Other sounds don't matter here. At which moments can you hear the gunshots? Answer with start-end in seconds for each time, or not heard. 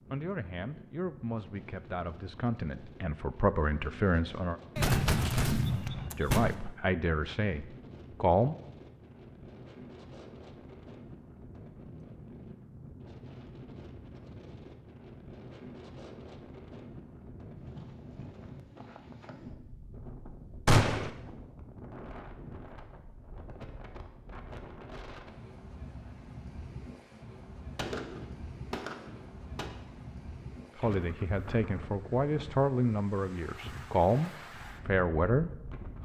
4.8-6.5, 20.6-21.1, 27.8-29.7.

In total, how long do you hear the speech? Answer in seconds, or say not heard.
12 s.